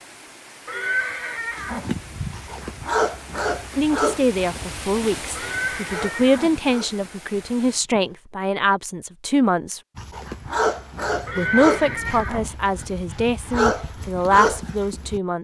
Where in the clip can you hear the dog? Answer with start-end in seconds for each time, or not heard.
1.6-8.2, 9.9-15.2.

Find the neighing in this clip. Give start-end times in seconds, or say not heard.
0.7-1.9, 5.3-6.5, 11.2-12.5.